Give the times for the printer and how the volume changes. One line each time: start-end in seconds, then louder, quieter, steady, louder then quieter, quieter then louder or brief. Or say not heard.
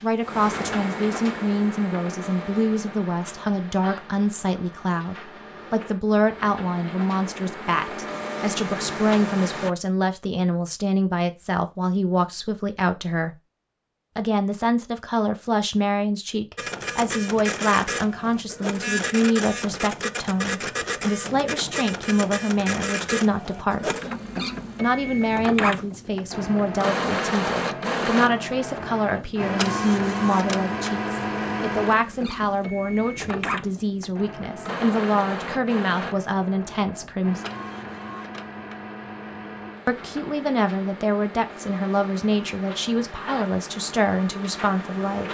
0.0-9.7 quieter then louder
16.6-45.2 quieter.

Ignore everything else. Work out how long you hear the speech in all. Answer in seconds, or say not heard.
41 s.